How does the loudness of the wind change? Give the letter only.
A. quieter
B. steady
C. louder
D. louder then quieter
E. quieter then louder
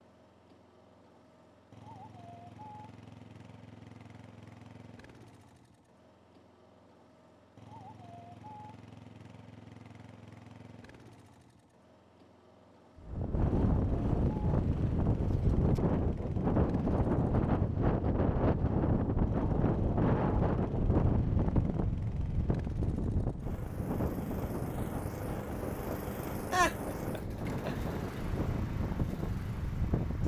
A.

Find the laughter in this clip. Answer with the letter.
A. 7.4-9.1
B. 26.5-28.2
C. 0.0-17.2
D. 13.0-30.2
B.